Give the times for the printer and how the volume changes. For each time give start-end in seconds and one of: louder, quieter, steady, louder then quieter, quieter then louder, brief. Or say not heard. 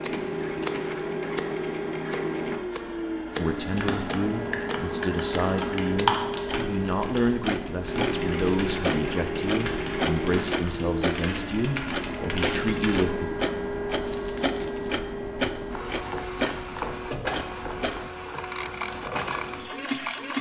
0.0-20.3 steady.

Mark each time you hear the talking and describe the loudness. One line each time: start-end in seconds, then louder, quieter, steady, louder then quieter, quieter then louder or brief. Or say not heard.
3.4-13.3 steady.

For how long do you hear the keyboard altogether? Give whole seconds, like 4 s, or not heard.
9 s.